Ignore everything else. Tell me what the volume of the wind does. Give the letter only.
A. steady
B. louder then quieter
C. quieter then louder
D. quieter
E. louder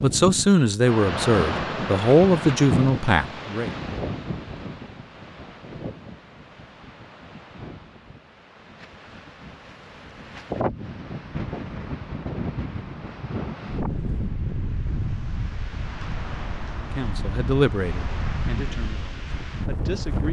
C.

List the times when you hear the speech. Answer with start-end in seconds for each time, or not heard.
0.0-3.7, 16.8-20.2.